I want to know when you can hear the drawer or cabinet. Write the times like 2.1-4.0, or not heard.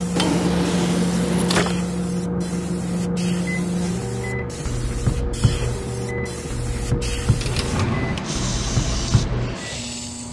0.1-1.8, 7.3-8.2.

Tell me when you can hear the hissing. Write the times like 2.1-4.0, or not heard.
0.0-10.2.